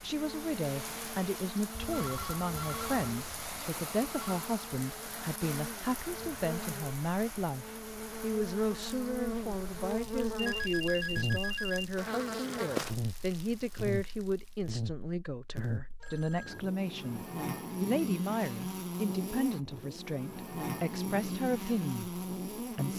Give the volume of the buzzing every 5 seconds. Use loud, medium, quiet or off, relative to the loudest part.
medium, medium, loud, loud, loud.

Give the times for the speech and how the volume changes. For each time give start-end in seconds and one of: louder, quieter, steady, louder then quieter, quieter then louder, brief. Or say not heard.
0.0-22.9 steady.